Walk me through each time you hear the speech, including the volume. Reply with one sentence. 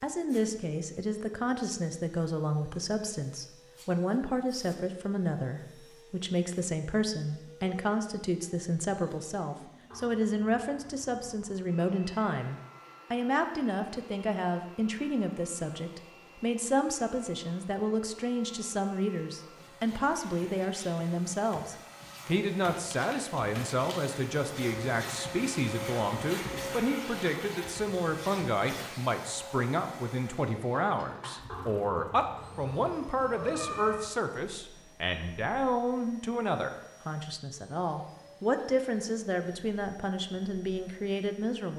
You can hear the speech from 0.0 to 41.7 s, at a steady volume.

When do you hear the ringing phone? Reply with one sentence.
The ringing phone can't be heard in this clip.